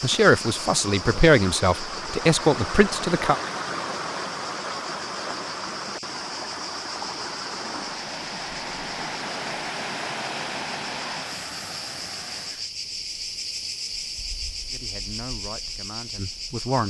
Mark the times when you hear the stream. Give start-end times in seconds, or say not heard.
0.0-12.7.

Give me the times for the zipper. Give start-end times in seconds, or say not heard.
not heard.